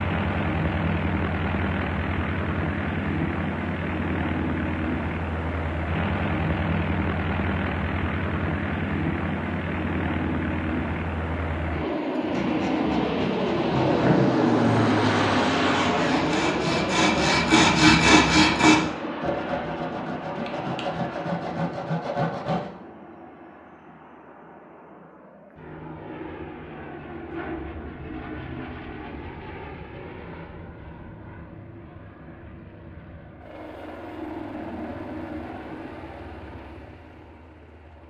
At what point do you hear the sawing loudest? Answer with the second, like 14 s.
18 s.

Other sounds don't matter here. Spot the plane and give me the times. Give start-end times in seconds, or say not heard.
0.0-38.0.